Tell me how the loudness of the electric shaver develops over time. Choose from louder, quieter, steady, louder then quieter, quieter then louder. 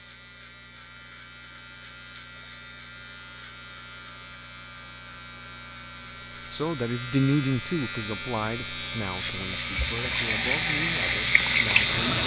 louder.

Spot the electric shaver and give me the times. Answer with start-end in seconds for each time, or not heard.
0.0-12.2.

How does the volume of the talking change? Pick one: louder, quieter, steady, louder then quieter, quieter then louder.
quieter.